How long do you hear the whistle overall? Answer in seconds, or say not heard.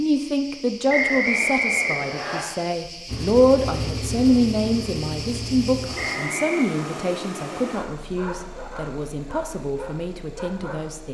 2 s.